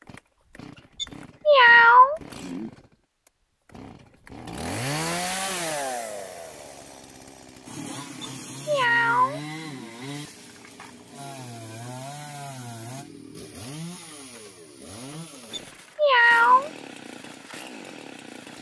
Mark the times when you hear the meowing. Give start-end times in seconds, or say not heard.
1.0-2.7, 8.2-9.9, 15.5-16.7.